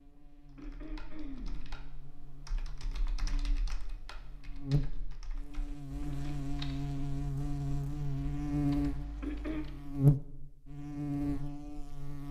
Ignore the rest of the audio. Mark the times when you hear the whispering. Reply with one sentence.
The whispering can't be heard in this clip.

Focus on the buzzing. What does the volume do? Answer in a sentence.
The volume of the buzzing goes up.